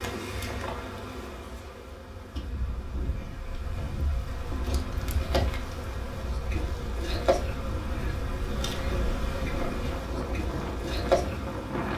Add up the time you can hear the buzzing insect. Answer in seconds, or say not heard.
12 s.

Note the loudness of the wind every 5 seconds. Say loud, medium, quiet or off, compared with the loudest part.
medium, medium, loud.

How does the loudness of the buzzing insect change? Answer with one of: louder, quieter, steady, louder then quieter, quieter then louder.
louder.